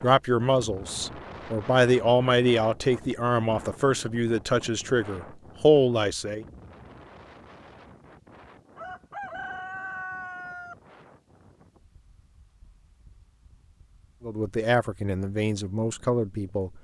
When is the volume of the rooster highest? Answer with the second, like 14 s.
10 s.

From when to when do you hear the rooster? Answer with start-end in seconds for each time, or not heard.
8.8-10.8.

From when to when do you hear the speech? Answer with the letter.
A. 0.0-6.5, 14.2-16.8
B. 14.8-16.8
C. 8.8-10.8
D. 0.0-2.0
A.